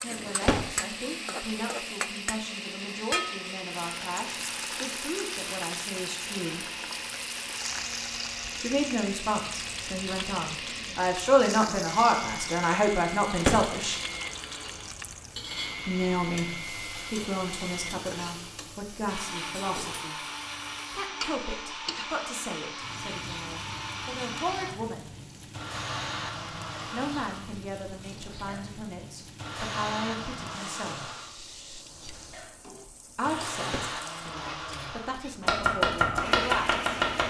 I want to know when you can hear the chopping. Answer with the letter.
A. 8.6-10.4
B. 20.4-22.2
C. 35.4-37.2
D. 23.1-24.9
C.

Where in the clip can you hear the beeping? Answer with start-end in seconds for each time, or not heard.
not heard.